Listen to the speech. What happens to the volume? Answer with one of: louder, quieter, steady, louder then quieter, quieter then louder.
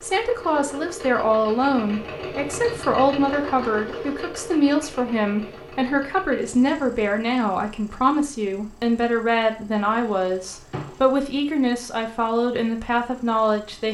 steady.